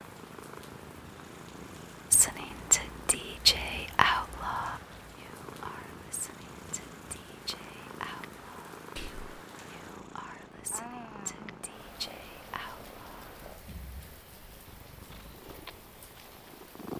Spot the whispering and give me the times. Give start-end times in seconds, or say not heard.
2.1-13.3.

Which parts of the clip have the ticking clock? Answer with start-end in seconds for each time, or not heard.
not heard.